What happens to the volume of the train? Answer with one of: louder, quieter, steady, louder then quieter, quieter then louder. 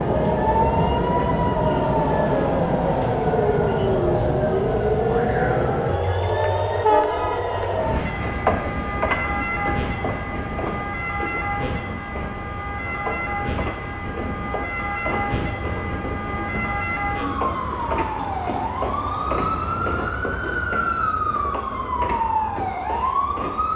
quieter.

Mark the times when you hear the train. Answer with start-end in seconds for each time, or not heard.
0.0-23.7.